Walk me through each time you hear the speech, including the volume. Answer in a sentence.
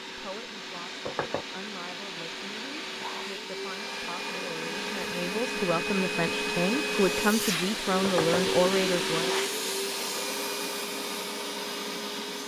The speech can be heard from 0.1 to 9.3 s, getting louder.